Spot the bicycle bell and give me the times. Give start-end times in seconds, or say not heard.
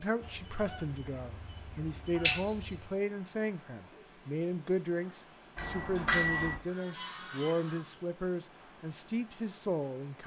2.2-2.8, 5.5-6.5.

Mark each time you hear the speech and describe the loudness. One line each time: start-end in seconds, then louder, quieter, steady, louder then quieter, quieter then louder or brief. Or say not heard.
0.0-10.2 steady.